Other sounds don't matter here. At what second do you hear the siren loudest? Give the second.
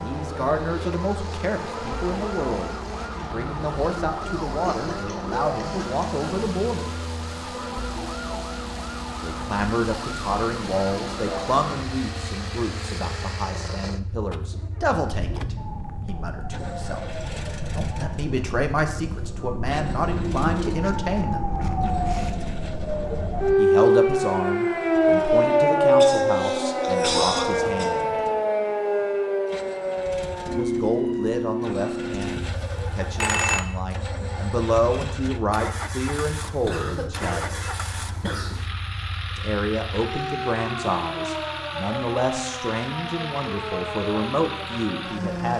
26 s.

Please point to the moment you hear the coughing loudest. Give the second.
27 s.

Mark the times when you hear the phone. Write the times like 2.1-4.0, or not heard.
32.2-33.6.